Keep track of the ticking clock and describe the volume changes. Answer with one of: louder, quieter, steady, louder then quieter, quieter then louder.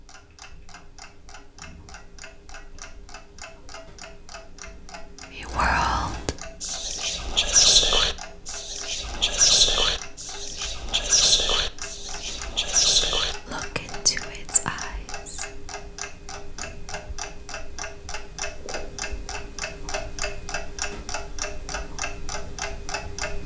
louder.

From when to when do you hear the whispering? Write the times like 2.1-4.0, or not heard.
5.3-15.4.